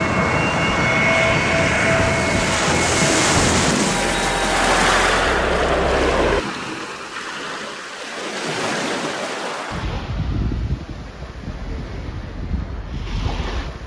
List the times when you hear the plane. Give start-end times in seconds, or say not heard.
0.0-6.5.